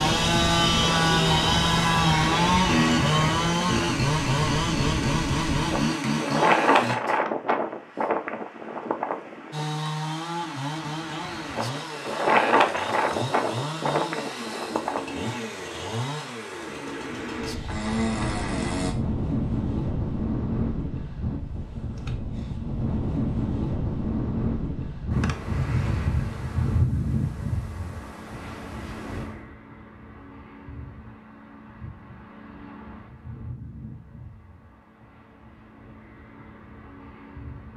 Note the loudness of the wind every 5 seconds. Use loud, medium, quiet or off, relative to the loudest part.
loud, loud, loud, medium, loud, loud, quiet, quiet.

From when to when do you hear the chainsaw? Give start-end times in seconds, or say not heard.
0.0-7.0, 9.5-18.9.